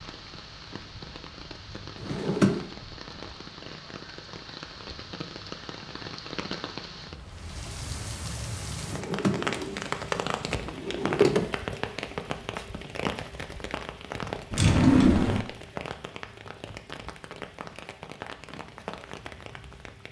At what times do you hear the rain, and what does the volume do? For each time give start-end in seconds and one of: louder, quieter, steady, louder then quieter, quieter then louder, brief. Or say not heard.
0.0-20.0 louder then quieter.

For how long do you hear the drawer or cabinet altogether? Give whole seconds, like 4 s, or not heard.
4 s.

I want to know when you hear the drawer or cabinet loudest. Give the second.
15 s.